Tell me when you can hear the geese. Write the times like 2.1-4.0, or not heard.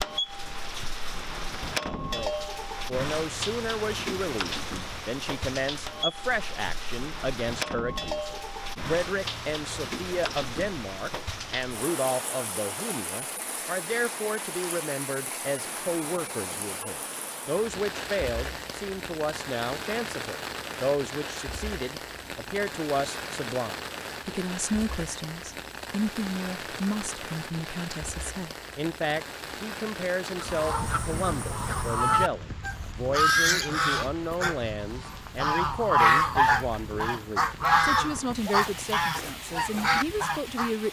30.4-40.7.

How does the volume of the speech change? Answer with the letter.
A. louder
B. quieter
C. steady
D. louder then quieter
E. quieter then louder
C.